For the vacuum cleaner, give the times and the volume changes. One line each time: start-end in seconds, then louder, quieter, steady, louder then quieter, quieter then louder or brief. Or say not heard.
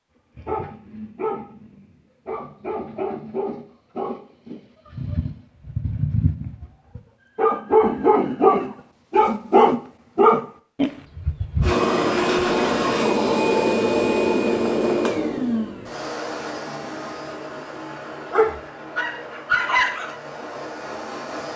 11.6-21.5 quieter.